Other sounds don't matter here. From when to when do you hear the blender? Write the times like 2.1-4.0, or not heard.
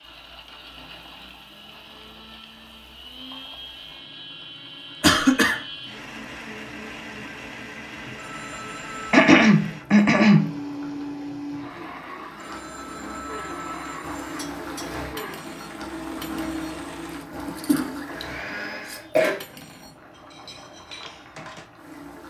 0.0-19.1.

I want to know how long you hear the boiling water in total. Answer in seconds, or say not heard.
22 s.